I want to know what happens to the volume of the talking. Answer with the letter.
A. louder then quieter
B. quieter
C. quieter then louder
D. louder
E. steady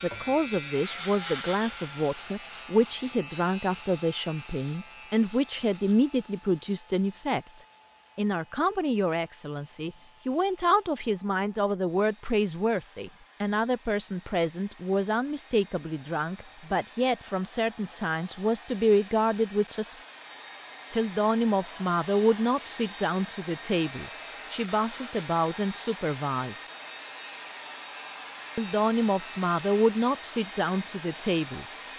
E.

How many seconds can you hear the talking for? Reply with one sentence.
You can hear the talking for 29 seconds altogether.